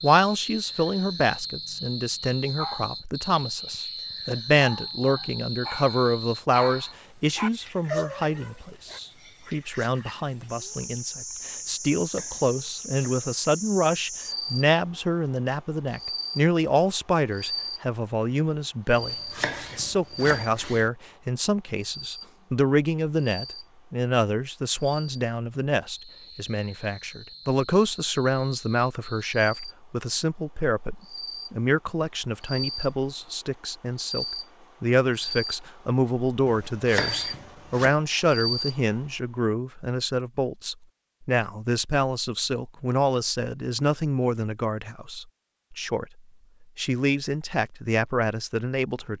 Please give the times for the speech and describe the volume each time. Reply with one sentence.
You can hear the speech from 0.0 to 46.0 s, at a steady volume; and briefly from 46.8 to 49.1 s.